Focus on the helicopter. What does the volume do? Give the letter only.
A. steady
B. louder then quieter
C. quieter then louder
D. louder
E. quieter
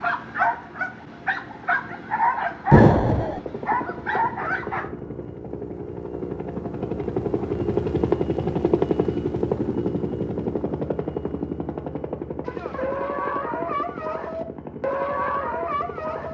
B.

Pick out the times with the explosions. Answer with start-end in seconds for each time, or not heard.
2.7-3.4.